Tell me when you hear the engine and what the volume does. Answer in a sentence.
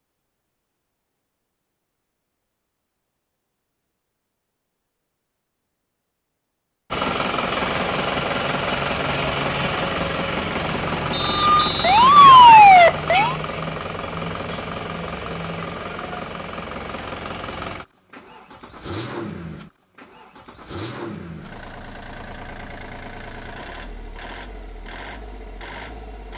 The engine can be heard from 6.9 to 26.3 s, getting quieter.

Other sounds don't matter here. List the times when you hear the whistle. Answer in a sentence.
You can hear the whistle from 11.1 to 12.1 s.